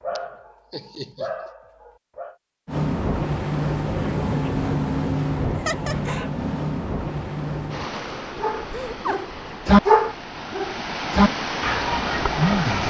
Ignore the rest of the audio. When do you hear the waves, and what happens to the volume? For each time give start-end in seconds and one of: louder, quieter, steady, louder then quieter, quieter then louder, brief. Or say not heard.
2.6-12.8 quieter then louder.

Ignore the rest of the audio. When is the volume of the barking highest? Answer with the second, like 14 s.
10 s.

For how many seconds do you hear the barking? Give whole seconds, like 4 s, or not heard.
7 s.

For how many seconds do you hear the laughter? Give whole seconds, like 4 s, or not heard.
3 s.